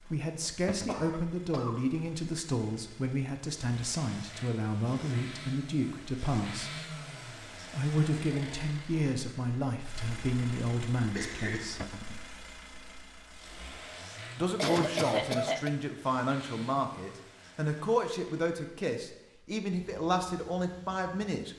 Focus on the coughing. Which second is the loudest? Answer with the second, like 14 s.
15 s.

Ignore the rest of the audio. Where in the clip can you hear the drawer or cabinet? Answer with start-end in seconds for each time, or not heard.
0.7-1.1, 11.8-12.2.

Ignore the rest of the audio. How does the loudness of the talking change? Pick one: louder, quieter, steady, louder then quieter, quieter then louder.
steady.